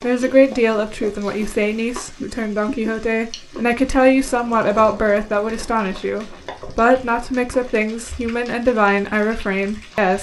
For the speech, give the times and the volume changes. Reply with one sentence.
You can hear the speech from 0.0 to 10.1 s, at a steady volume.